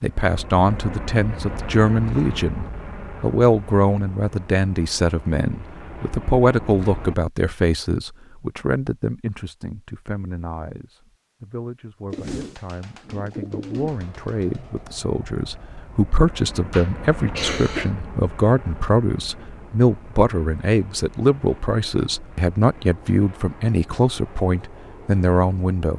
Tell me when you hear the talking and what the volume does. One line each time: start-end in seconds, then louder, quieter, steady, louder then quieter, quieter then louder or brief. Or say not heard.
0.0-25.9 quieter then louder.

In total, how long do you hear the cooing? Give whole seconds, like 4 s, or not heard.
3 s.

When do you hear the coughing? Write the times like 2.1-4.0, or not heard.
16.7-17.9.